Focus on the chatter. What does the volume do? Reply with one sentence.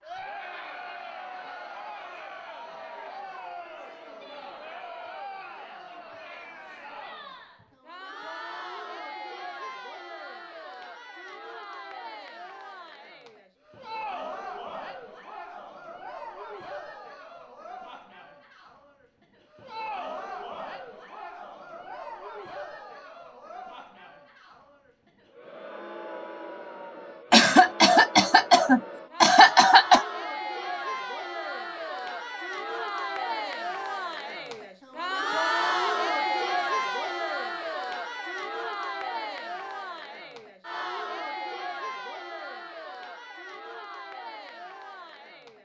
The loudness of the chatter goes up.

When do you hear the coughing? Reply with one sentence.
You can hear the coughing from 27.3 to 30.1 s.